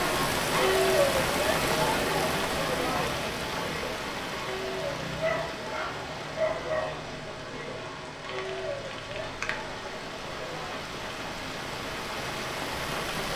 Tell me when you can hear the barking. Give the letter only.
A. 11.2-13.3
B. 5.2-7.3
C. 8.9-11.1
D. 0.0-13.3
B.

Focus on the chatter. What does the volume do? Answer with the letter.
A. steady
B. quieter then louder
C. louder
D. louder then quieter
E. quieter
E.